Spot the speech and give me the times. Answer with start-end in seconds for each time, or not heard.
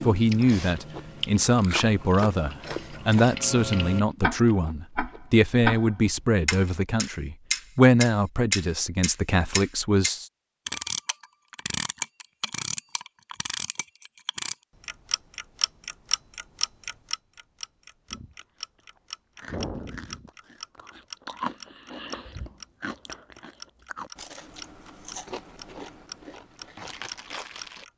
0.0-10.2.